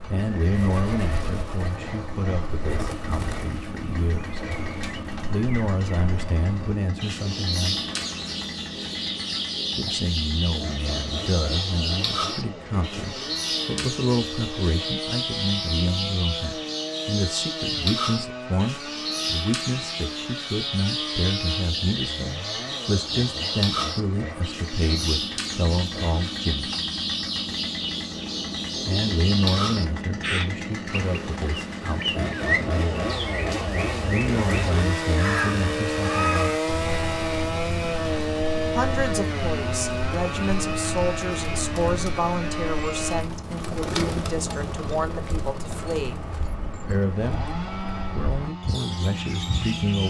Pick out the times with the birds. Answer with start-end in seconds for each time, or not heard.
0.0-50.0.